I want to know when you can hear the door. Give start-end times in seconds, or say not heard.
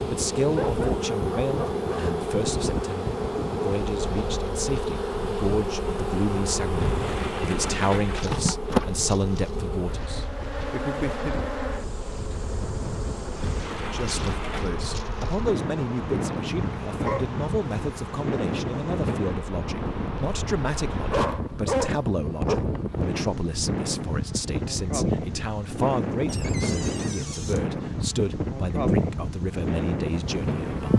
6.7-8.3, 13.3-14.8, 26.2-27.6.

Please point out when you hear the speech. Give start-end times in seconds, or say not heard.
0.1-11.4, 13.9-30.9.